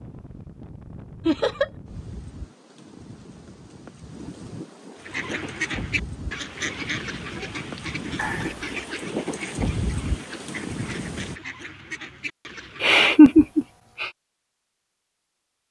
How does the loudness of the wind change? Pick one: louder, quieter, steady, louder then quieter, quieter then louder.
louder.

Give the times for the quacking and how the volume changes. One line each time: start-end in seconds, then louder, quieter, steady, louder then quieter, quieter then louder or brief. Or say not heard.
5.0-13.0 quieter.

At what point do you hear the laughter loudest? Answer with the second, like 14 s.
13 s.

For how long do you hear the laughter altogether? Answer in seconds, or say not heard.
2 s.